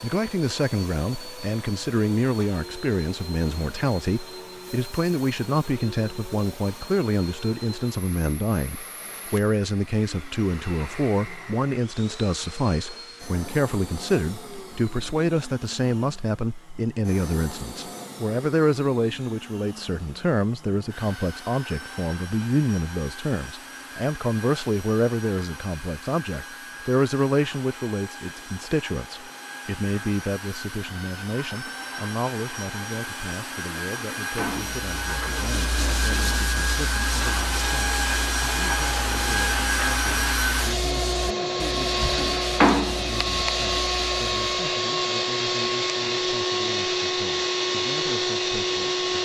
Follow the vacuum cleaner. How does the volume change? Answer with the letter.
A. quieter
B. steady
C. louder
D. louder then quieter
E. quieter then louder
C.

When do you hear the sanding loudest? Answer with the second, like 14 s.
43 s.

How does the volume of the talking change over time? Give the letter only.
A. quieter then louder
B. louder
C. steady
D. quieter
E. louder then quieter
D.